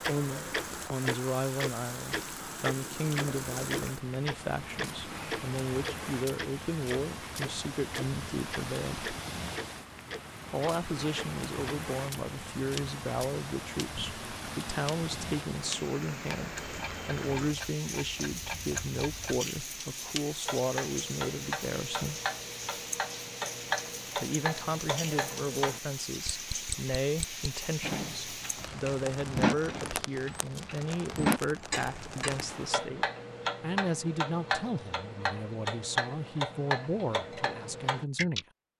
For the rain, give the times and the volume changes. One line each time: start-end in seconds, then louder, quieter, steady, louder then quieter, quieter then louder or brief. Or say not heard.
0.0-32.9 steady.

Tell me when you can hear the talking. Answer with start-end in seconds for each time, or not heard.
0.1-9.1, 10.5-22.2, 24.1-38.5.